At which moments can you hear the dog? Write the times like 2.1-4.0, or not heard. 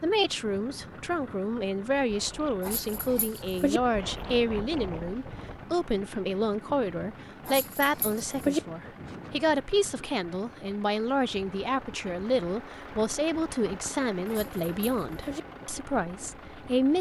2.6-3.8, 7.5-8.6, 14.2-15.4.